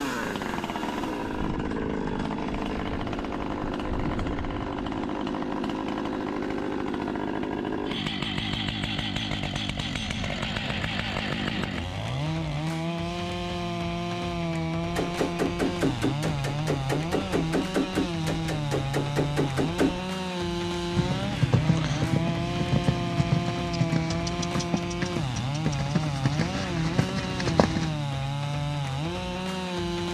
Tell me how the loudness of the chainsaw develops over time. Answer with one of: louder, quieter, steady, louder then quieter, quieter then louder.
steady.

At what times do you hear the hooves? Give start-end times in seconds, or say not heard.
20.9-28.0.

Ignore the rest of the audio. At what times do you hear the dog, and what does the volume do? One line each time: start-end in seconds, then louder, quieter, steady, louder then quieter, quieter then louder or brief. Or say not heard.
not heard.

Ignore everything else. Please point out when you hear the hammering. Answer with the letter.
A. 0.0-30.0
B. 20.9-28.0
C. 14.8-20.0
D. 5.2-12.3
C.